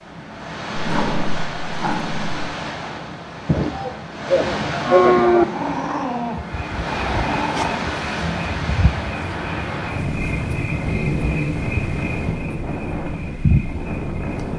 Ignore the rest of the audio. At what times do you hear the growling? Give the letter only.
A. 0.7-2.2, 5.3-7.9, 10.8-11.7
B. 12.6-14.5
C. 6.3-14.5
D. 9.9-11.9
A.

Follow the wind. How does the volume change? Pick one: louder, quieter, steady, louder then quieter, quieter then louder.
steady.